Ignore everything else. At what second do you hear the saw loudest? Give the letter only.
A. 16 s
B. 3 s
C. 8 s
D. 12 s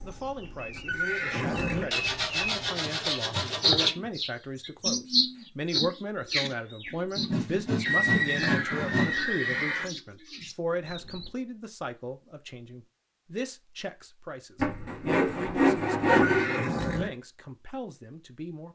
A.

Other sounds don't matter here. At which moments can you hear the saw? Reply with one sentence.
You can hear the saw from 1.9 to 3.9 s, from 7.2 to 9.7 s and from 14.6 to 16.6 s.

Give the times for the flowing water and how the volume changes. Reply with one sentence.
You can't hear the flowing water here.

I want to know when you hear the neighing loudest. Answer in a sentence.
The loudest moment of the neighing is at 8 seconds.